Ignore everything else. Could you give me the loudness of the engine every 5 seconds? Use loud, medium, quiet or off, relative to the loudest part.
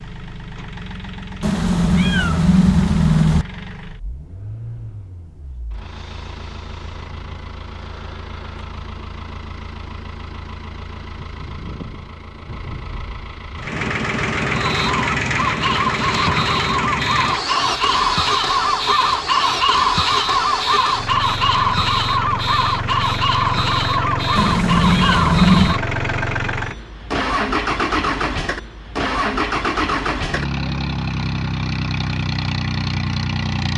quiet, quiet, medium, loud, loud, loud, loud.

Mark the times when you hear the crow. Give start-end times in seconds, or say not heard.
14.5-25.8.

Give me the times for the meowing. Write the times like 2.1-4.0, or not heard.
1.4-3.5, 24.4-25.8.